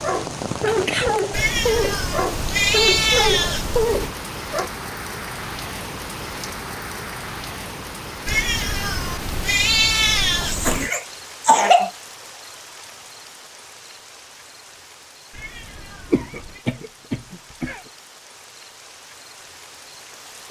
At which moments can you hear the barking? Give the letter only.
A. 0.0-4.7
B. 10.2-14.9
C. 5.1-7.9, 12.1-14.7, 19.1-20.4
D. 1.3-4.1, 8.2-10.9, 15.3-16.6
A.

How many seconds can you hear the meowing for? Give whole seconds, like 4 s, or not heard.
7 s.